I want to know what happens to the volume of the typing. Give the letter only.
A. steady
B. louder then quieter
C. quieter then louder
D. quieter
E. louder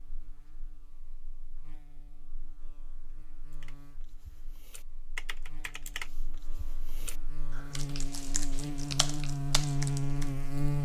C.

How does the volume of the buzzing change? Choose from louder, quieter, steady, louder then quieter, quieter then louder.
louder.